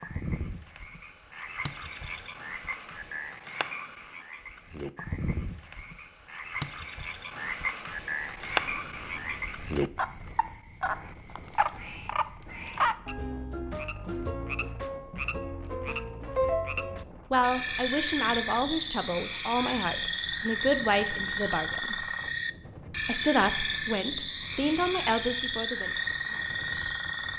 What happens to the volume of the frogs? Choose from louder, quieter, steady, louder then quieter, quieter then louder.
louder.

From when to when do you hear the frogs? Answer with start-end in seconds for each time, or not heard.
0.0-27.3.